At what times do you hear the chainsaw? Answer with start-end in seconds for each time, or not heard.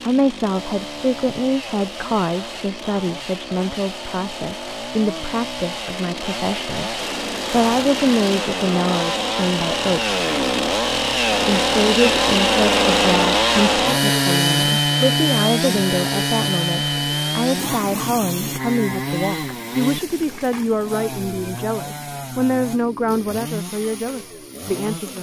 0.0-25.1.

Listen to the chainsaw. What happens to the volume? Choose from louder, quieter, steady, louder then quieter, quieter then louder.
louder then quieter.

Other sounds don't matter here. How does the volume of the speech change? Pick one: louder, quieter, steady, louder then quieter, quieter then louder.
steady.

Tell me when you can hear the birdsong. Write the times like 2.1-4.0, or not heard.
not heard.